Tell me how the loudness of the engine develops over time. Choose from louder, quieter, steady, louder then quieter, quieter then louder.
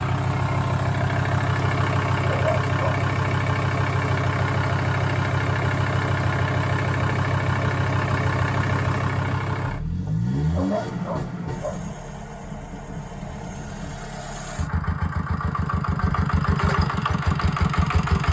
quieter then louder.